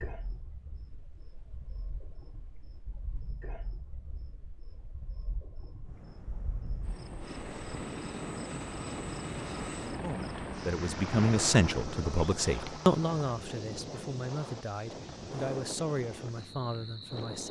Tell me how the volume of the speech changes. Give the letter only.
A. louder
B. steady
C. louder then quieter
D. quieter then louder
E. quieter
E.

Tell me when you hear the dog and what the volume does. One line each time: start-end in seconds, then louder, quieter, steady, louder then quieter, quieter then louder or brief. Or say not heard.
not heard.